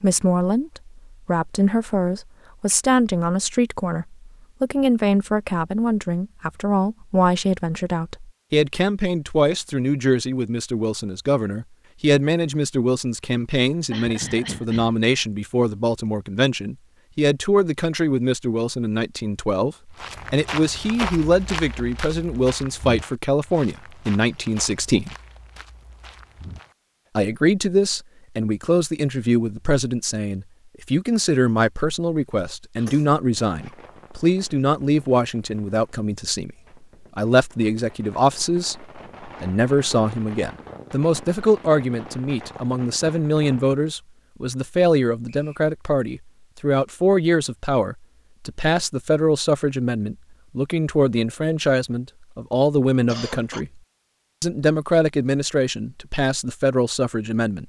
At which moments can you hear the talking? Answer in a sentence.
The talking can be heard from 0.0 to 25.1 s, from 27.1 to 36.5 s, from 37.1 to 53.8 s and from 54.4 to 57.6 s.